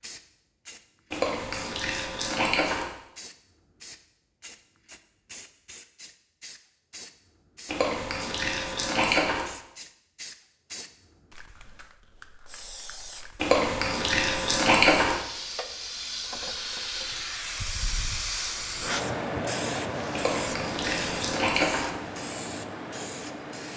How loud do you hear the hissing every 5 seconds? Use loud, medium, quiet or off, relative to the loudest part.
quiet, quiet, quiet, loud, loud.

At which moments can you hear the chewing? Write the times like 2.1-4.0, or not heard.
1.1-2.9, 7.7-9.4, 13.3-15.2, 20.1-21.9.